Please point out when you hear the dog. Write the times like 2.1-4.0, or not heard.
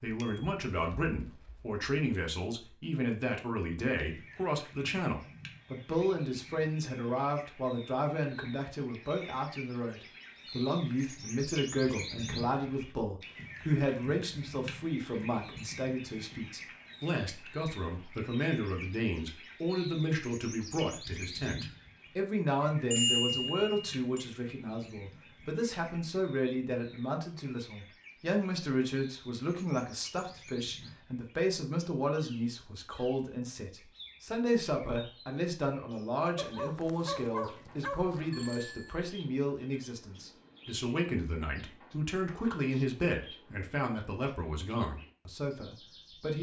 36.4-38.3.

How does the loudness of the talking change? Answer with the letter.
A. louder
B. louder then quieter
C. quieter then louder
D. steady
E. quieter
D.